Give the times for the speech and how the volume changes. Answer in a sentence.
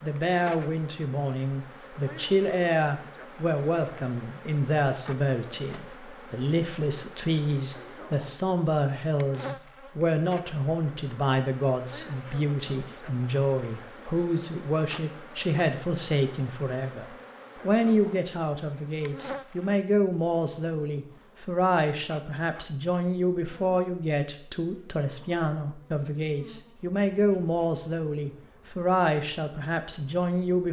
You can hear the speech from 0.0 to 30.6 s, at a steady volume.